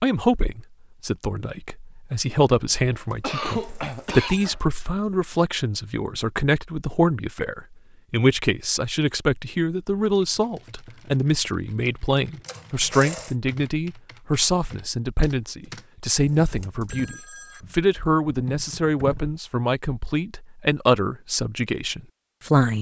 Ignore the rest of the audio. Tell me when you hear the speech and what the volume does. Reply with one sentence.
The speech can be heard from 0.0 to 22.7 s, at a steady volume.